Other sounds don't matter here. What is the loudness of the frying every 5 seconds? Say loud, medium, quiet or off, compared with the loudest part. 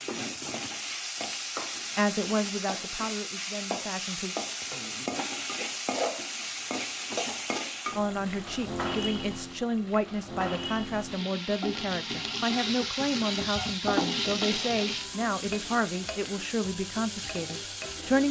loud, loud, loud, medium.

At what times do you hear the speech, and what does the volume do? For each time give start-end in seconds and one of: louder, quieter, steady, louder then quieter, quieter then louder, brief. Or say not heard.
1.9-4.3 brief
8.0-18.2 steady.